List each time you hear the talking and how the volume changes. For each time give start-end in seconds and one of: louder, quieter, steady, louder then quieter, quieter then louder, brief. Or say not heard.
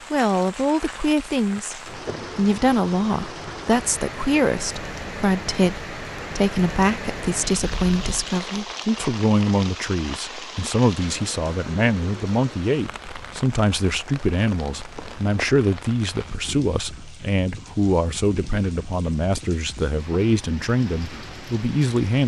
0.1-22.2 steady.